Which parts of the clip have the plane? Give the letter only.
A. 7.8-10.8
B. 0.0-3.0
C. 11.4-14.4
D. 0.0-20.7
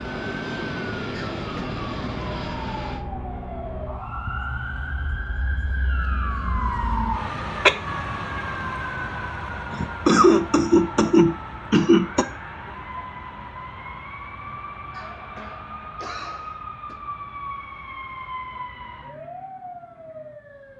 B.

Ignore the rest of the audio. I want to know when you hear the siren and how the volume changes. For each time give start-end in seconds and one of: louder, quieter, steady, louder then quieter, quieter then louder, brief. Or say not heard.
0.0-20.7 louder then quieter.